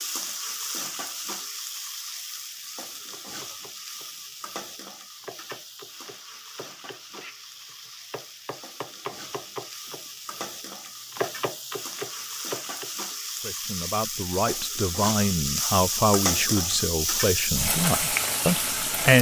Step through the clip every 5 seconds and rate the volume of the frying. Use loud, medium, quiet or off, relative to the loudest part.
medium, quiet, medium, loud.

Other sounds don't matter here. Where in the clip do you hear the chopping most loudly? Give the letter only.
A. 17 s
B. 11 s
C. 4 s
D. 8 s
B.